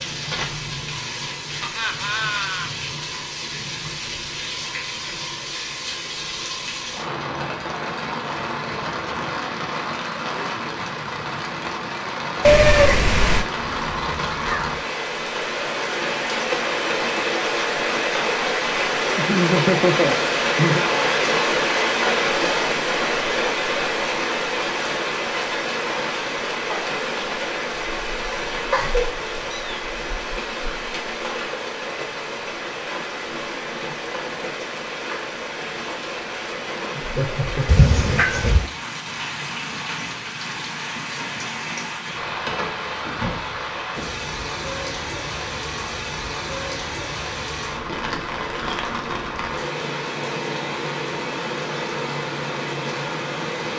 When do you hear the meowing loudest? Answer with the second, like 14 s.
13 s.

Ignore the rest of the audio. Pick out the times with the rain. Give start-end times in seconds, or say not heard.
0.0-53.7.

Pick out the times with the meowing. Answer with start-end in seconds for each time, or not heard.
12.4-13.4, 28.7-29.9, 37.6-38.6.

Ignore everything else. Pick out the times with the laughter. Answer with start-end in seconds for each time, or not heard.
1.6-2.7, 19.1-20.8, 37.0-38.6.